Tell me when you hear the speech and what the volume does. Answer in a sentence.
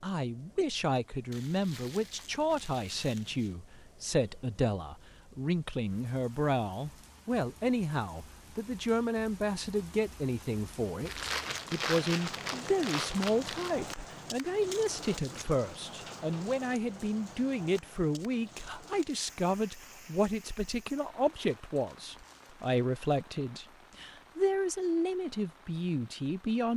You can hear the speech from 0.0 to 26.7 s, at a steady volume.